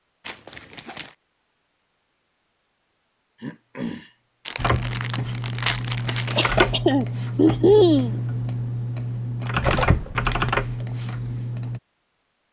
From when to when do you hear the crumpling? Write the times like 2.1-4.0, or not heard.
0.2-1.1, 4.5-6.5, 9.6-10.6.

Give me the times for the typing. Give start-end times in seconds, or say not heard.
4.5-11.8.